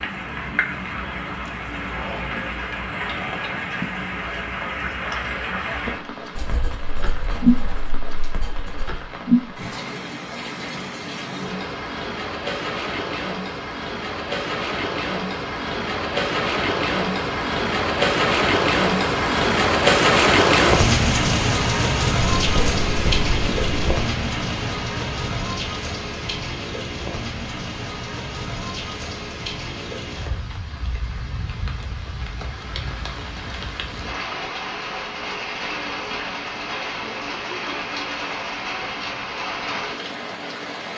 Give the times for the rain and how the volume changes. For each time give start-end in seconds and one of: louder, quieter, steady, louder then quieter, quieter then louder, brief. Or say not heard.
0.0-40.9 louder then quieter.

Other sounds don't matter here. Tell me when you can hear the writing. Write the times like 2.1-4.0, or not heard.
6.3-9.1, 22.4-24.0.